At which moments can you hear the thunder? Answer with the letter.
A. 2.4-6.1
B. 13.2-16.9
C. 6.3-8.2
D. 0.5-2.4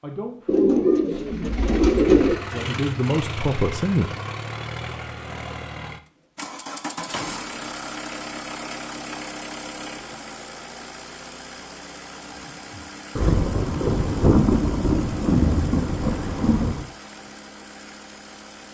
B.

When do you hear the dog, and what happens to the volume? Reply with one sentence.
The dog can't be heard in this clip.